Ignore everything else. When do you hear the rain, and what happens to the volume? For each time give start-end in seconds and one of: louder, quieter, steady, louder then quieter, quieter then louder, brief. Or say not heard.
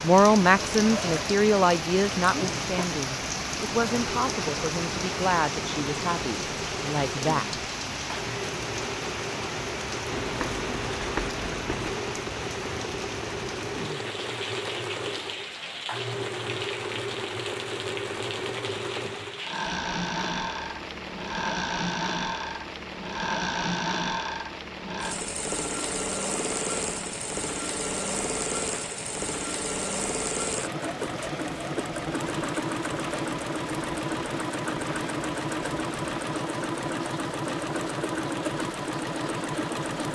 0.0-40.1 quieter.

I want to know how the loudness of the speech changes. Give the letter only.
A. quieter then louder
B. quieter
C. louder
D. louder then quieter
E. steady
B.